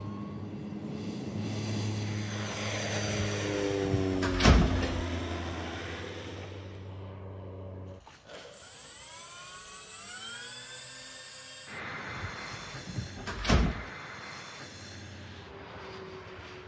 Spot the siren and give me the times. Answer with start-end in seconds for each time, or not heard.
not heard.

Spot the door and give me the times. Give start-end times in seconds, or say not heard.
3.0-5.0, 12.1-13.9.